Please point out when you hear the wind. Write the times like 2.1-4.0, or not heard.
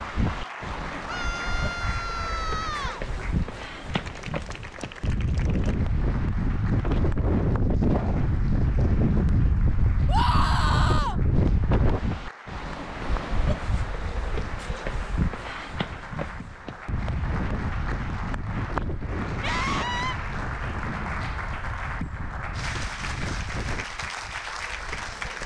0.0-25.4.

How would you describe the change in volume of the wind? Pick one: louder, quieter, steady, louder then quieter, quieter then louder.
louder then quieter.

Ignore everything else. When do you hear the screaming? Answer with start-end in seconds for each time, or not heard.
1.1-3.0, 10.1-11.2, 19.4-20.1.